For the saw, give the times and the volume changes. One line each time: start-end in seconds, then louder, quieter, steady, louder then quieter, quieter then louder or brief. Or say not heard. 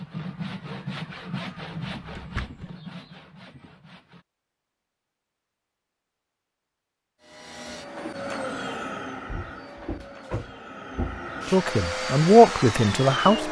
0.0-4.2 quieter.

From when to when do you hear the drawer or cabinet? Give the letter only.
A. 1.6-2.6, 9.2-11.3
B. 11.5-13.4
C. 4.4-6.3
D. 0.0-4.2
A.